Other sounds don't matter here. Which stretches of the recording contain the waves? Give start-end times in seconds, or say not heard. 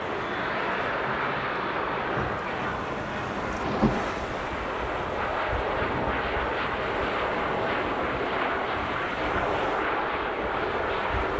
0.0-11.3.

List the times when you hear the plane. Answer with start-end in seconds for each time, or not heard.
0.0-11.3.